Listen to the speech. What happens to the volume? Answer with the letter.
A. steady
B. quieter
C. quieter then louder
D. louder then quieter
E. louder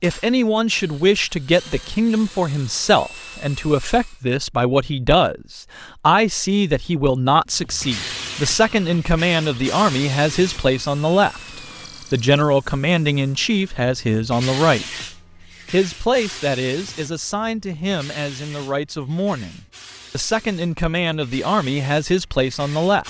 A.